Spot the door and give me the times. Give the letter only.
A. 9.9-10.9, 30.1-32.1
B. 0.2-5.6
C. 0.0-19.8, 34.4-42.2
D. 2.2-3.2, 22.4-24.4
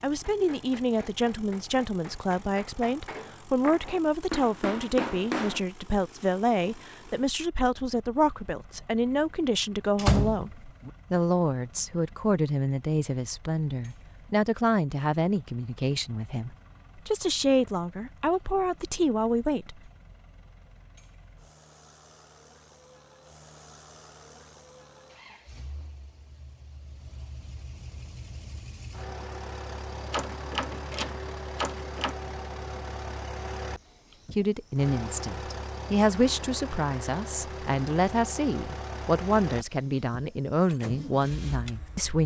A.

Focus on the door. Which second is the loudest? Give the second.
10 s.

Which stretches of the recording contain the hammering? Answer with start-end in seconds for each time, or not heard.
0.2-5.6.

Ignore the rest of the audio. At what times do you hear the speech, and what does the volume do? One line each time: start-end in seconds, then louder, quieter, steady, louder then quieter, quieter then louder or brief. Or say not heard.
0.0-19.8 steady
34.4-42.2 steady.